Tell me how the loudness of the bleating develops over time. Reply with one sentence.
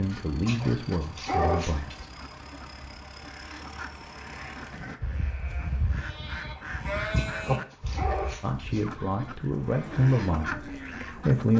The loudness of the bleating goes up, then down.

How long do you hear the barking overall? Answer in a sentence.
The barking can be heard for 3 seconds in total.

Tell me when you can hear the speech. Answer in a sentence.
The speech can be heard from 0.0 to 1.9 s and from 8.4 to 11.5 s.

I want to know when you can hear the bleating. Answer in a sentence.
The bleating can be heard from 4.3 to 11.0 s.